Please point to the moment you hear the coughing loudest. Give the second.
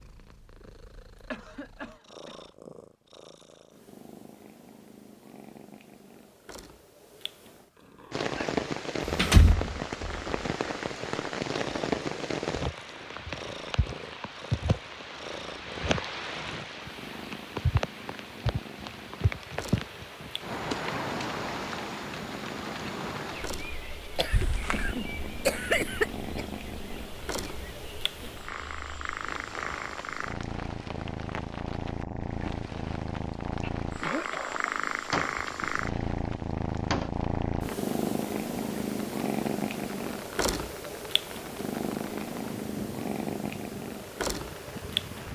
26 s.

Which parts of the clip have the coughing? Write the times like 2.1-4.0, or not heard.
1.3-2.5, 24.1-26.4, 33.6-34.7.